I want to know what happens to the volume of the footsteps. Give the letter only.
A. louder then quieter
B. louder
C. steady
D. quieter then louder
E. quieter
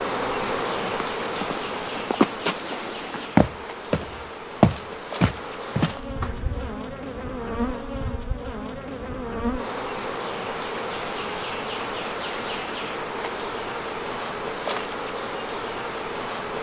A.